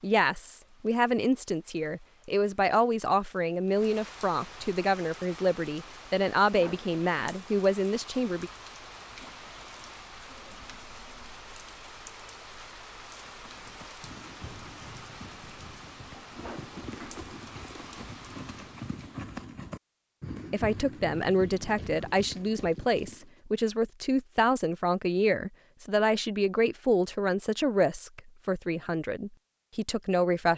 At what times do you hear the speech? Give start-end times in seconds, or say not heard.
0.0-8.5, 20.5-30.5.